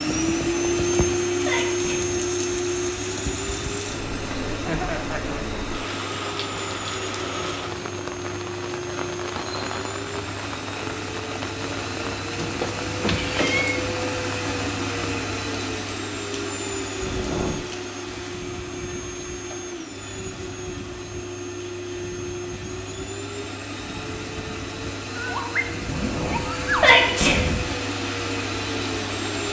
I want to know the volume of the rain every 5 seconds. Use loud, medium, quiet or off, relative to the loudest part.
loud, loud, loud, medium, medium, medium.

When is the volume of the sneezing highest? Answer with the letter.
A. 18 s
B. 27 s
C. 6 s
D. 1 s
B.